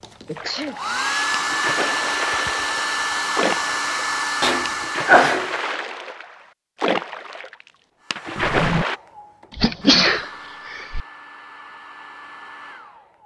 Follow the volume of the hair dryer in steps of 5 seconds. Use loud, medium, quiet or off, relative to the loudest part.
loud, quiet, quiet.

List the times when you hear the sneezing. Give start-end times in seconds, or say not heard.
0.2-0.8, 4.4-5.5, 9.6-11.0.